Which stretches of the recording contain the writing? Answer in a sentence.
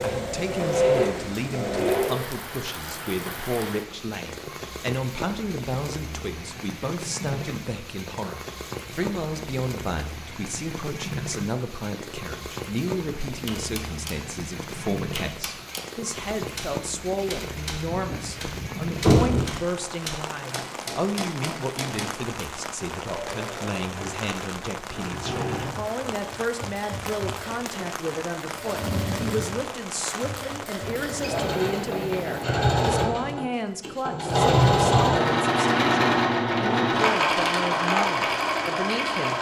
You can't hear the writing here.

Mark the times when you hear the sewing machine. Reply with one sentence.
The sewing machine can be heard from 0.0 to 2.2 s and from 23.1 to 39.3 s.